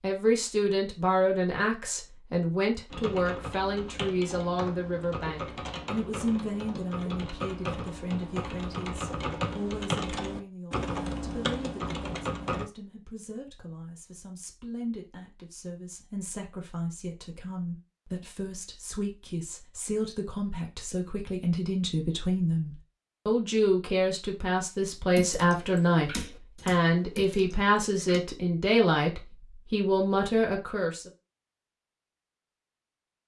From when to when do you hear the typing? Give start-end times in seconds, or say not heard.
2.9-12.7, 25.1-28.2.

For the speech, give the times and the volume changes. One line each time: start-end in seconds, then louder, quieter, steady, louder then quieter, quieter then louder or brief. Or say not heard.
0.0-31.1 quieter then louder.